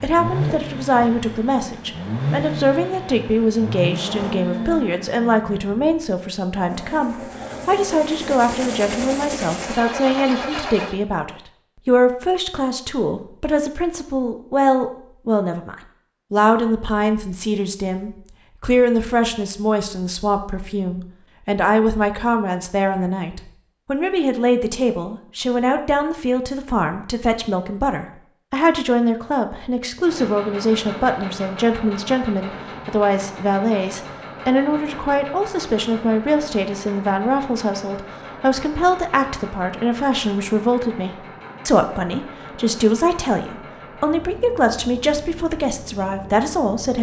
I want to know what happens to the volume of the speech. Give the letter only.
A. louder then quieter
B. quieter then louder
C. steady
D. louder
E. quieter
C.